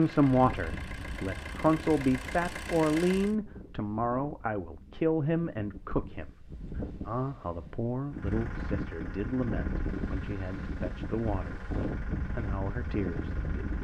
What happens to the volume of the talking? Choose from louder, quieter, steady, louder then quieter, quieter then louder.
quieter.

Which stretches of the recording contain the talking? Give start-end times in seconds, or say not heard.
0.0-13.7.